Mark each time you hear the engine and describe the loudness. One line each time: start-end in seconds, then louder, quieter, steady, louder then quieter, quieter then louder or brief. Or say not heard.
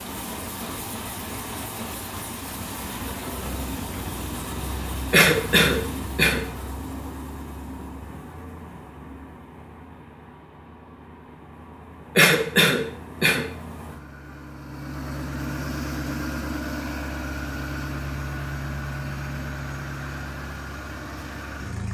0.0-21.8 quieter then louder.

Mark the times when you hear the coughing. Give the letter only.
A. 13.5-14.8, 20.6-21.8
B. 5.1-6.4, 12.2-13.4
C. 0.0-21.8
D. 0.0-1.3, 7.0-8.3
B.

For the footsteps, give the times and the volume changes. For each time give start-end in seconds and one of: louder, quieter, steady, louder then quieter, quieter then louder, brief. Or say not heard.
not heard.